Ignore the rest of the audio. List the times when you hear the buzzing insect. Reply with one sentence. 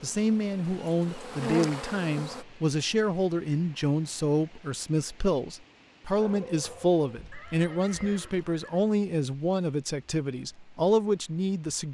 You can hear the buzzing insect from 0.0 to 2.5 s.